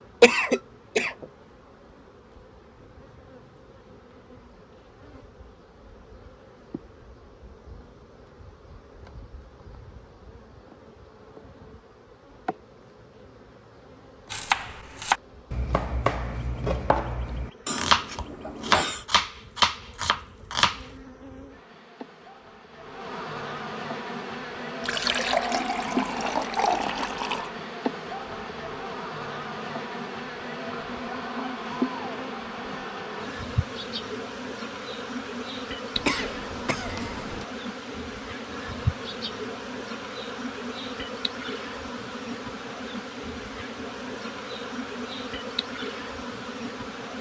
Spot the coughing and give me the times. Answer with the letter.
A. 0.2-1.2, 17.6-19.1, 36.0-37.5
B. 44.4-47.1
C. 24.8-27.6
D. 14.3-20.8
A.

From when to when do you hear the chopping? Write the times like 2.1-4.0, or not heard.
14.3-20.8.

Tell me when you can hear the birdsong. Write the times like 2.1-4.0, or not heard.
not heard.